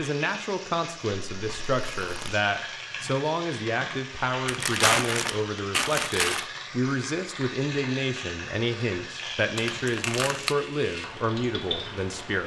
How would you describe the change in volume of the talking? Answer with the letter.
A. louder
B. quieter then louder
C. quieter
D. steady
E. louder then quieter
D.